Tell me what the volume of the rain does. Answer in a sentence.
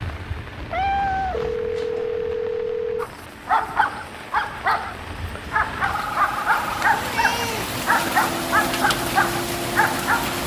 The loudness of the rain goes up.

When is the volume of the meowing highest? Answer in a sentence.
The volume of the meowing peaks at 1 second.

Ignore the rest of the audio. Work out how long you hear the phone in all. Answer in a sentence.
You can hear the phone for 3 seconds altogether.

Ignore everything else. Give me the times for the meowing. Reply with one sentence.
The meowing can be heard from 0.6 to 1.6 s and from 6.8 to 7.8 s.